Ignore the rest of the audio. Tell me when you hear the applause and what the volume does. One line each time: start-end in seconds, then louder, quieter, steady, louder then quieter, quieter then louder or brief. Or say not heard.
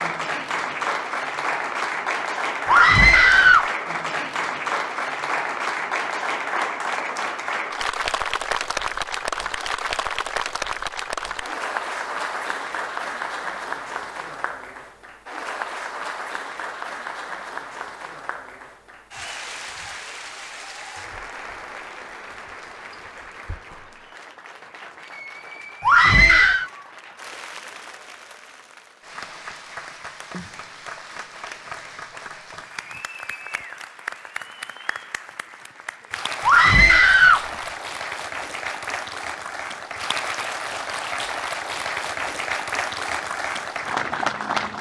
0.0-44.7 quieter then louder.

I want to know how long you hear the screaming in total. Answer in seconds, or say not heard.
3 s.